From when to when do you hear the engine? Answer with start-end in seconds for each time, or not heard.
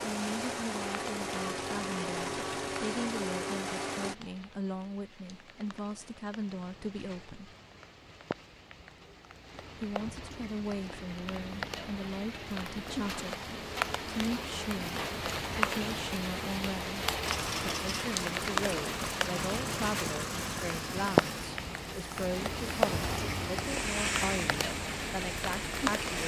0.0-4.2, 17.2-26.2.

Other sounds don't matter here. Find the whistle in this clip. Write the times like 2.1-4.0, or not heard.
not heard.